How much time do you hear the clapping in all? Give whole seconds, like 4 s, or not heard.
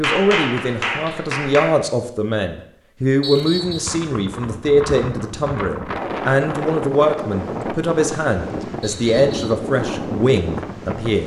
2 s.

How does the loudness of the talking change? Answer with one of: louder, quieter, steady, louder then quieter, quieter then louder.
steady.